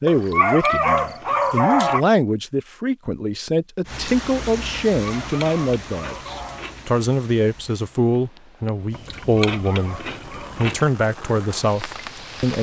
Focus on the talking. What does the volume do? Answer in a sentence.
The volume of the talking stays about the same.